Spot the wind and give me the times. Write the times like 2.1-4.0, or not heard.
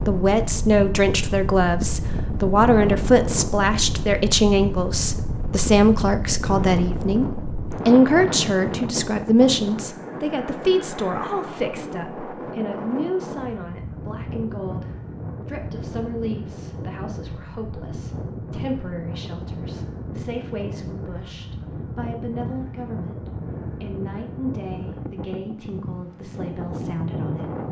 0.0-27.6.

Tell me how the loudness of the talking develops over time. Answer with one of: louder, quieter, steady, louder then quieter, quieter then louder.
quieter.